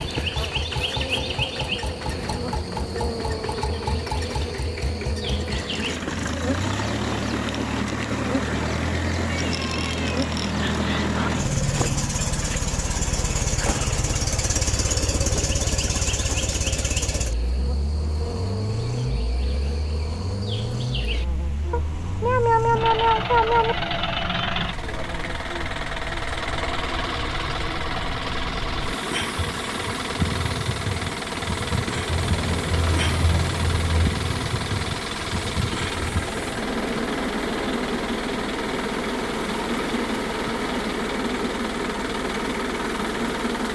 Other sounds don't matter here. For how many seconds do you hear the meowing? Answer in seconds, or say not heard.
6 s.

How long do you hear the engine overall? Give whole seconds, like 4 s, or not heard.
44 s.